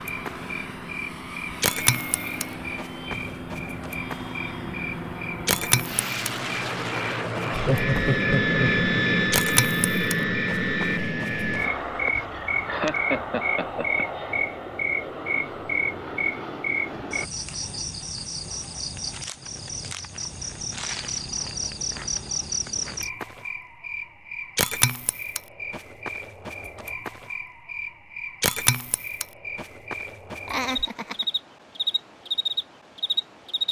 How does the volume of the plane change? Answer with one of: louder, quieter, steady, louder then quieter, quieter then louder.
louder then quieter.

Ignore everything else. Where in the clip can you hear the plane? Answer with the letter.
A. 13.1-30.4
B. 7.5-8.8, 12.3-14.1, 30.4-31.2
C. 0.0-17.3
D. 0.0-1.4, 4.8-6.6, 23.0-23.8
C.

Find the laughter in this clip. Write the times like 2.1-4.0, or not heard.
7.5-8.8, 12.3-14.1, 30.4-31.2.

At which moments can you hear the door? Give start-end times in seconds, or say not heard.
not heard.